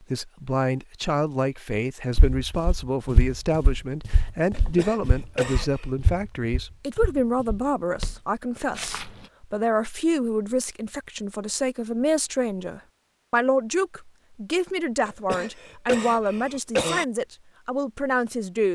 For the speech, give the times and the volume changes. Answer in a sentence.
You can hear the speech from 0.0 to 18.7 s, at a steady volume.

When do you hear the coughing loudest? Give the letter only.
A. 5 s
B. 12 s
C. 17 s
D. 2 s
C.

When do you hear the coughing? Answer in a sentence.
The coughing can be heard from 4.5 to 5.8 s and from 15.1 to 17.1 s.